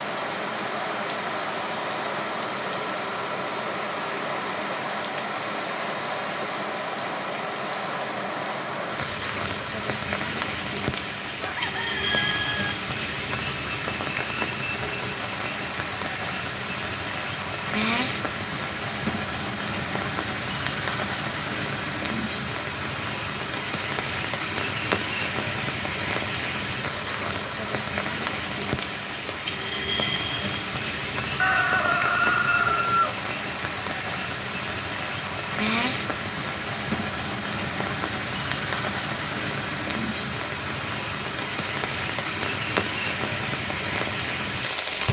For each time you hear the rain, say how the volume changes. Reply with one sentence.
The rain can be heard from 0.0 to 45.0 s, at a steady volume.